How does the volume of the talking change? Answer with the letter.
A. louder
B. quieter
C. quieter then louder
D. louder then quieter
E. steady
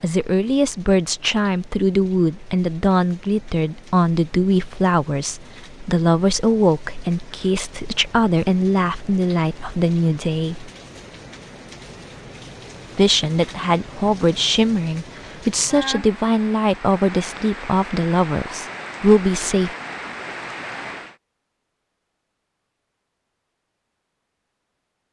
E.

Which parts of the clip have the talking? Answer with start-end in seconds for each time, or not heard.
0.0-10.7, 12.9-19.7.